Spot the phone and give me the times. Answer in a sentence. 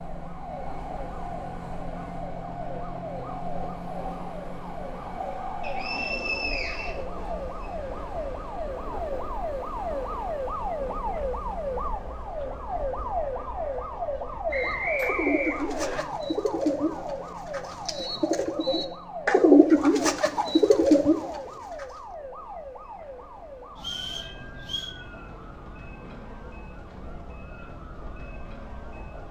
You can't hear the phone here.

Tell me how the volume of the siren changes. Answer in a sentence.
The volume of the siren goes up, then down.